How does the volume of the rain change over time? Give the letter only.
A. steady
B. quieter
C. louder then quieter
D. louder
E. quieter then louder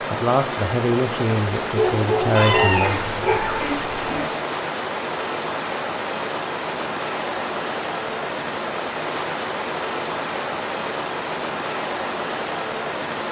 A.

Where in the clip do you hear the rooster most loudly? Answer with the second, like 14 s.
3 s.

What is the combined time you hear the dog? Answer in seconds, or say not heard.
2 s.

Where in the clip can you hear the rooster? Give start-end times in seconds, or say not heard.
2.4-4.3.